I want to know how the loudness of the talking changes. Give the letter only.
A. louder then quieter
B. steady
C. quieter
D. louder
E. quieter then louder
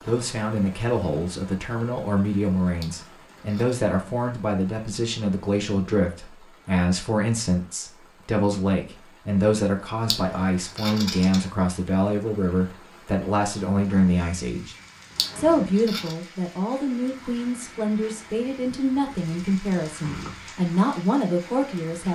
B.